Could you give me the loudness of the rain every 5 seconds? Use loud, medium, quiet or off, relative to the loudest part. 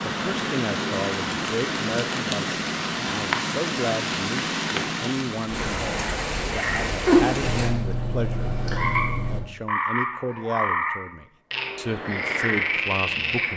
loud, loud, off.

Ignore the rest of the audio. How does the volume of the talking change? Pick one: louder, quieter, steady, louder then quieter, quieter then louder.
steady.